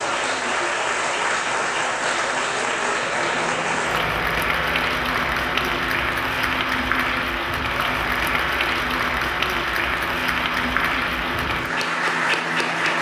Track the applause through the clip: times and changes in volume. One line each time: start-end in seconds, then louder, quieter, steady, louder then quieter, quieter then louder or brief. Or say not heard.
0.0-12.9 steady.